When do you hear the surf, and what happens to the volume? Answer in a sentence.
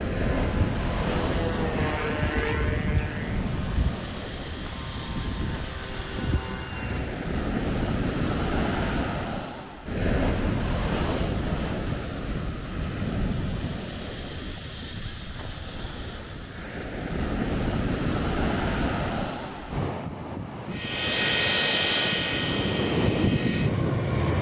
The surf can be heard from 0.0 to 24.3 s, at a steady volume.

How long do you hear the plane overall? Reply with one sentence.
You can hear the plane for 11 seconds altogether.